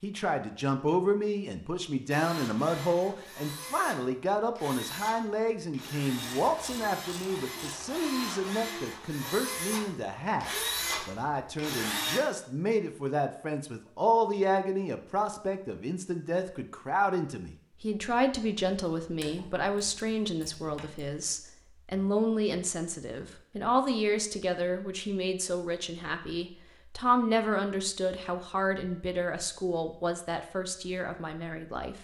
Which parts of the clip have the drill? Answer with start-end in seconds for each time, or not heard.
2.1-12.2.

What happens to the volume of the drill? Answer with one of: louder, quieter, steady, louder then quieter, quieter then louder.
louder.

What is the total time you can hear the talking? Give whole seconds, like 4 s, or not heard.
32 s.